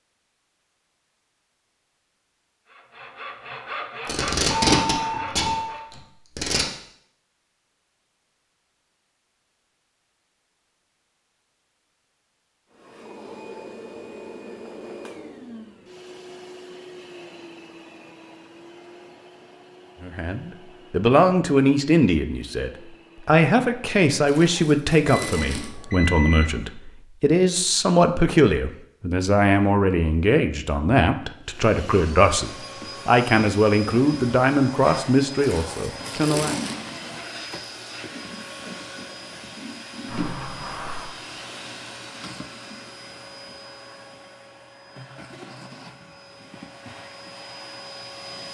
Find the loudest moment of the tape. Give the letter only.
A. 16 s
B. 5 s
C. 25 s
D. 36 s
B.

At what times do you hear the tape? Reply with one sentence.
The tape can be heard from 4.0 to 6.7 s, from 24.2 to 25.7 s and from 35.4 to 36.8 s.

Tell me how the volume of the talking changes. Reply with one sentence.
The volume of the talking stays about the same.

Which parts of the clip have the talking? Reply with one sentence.
The talking can be heard from 20.0 to 36.5 s.